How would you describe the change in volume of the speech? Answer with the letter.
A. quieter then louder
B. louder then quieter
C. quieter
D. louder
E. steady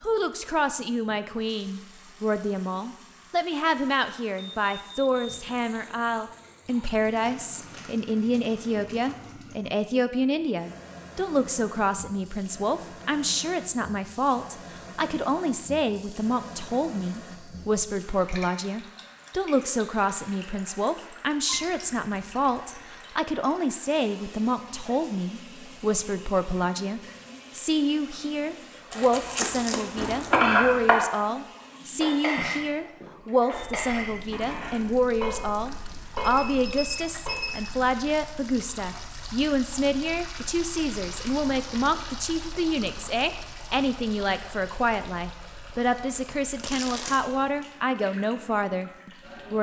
E.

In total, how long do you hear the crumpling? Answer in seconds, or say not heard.
4 s.